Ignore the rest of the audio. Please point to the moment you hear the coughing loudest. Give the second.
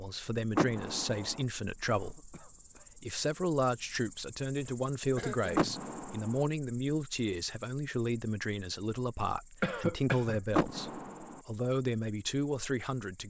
10 s.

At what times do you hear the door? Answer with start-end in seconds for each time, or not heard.
0.6-1.4, 5.5-6.4, 10.5-11.4.